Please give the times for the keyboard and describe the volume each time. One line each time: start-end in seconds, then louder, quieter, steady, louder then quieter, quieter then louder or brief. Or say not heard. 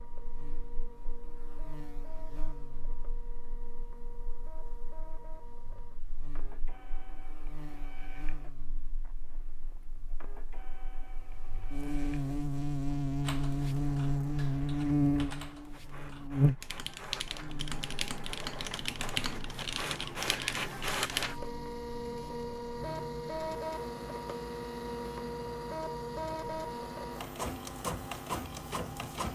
13.2-21.4 louder.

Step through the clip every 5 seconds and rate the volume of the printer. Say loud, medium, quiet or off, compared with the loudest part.
quiet, quiet, quiet, medium, loud, loud.